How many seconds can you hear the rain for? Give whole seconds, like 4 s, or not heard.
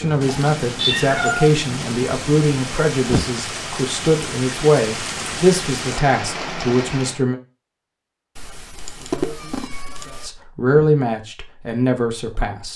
7 s.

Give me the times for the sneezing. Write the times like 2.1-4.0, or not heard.
2.8-3.3, 10.3-10.9.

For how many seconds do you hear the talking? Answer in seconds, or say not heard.
11 s.